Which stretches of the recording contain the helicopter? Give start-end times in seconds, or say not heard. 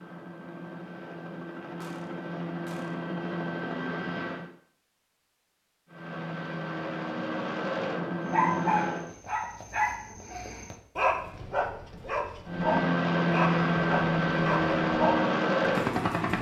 0.0-4.5, 5.8-9.1, 12.4-16.3.